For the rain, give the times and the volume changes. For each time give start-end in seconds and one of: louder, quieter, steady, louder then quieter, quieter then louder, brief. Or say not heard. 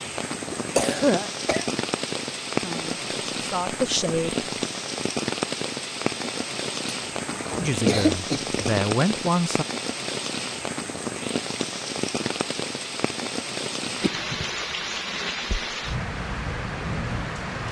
0.0-17.6 steady.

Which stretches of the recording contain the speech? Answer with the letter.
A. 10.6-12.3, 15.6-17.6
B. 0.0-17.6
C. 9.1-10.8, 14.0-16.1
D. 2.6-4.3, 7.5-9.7
D.